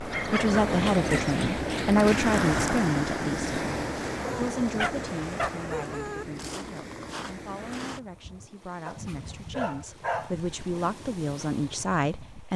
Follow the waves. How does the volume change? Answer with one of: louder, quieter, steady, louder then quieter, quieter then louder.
quieter.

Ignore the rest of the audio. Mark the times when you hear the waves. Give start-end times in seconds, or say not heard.
0.0-12.5.